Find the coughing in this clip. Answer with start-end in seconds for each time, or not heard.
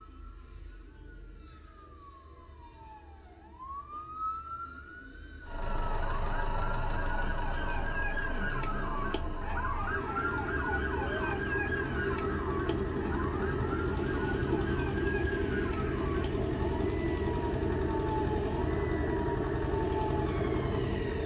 not heard.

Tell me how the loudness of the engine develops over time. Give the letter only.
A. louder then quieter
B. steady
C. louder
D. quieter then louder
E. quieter
C.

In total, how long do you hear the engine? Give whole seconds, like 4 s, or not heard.
16 s.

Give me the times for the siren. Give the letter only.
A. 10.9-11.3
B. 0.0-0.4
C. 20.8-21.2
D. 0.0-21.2
D.